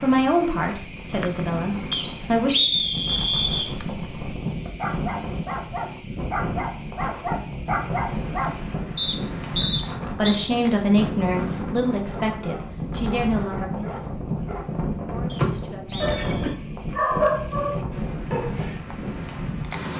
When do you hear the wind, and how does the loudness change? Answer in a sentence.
The wind can be heard from 0.0 to 19.9 s, at a steady volume.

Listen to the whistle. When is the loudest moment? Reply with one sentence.
The volume of the whistle peaks at 3 seconds.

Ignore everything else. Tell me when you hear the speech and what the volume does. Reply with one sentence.
You can hear the speech briefly from 0.0 to 2.5 s; and from 9.6 to 16.2 s, getting quieter.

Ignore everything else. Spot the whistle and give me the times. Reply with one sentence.
The whistle can be heard from 1.9 to 3.7 s, from 8.9 to 10.4 s and from 15.2 to 16.6 s.